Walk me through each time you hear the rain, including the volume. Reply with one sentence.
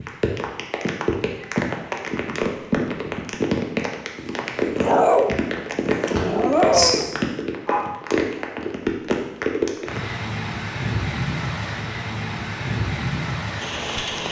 The rain can be heard from 0.0 to 14.2 s, at a steady volume.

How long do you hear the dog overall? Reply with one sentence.
You can hear the dog for 4 seconds altogether.